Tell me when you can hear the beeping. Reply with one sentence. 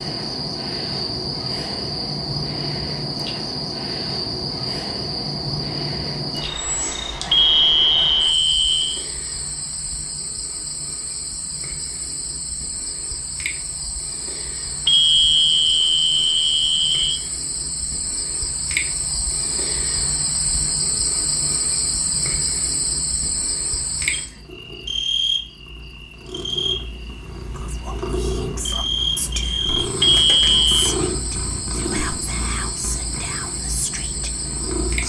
The beeping can be heard from 7.3 to 9.0 s, from 14.8 to 17.1 s and from 30.0 to 30.9 s.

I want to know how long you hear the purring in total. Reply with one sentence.
You can hear the purring for 11 seconds altogether.